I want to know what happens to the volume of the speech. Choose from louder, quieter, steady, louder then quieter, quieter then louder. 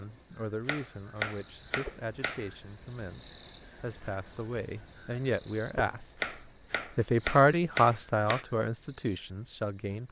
louder then quieter.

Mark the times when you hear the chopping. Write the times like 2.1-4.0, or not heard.
0.7-2.5, 6.2-8.4.